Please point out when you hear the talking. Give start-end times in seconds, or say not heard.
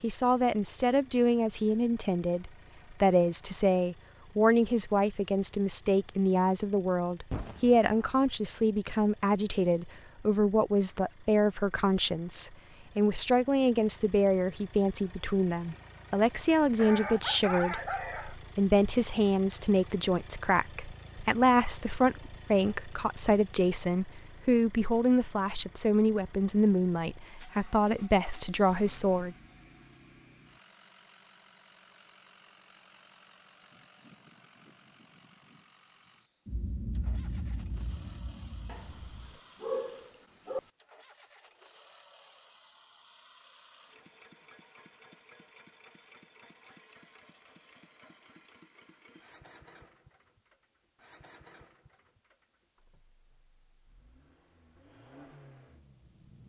0.0-29.4.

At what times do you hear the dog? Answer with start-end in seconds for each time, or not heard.
16.8-18.4, 38.6-40.6.